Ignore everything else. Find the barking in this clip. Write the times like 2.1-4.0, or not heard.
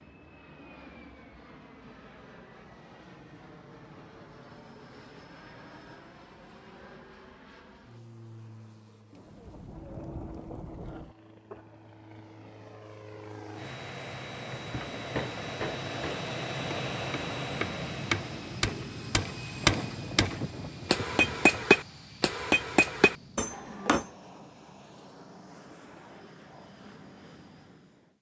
not heard.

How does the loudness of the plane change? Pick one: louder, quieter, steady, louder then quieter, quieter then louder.
louder then quieter.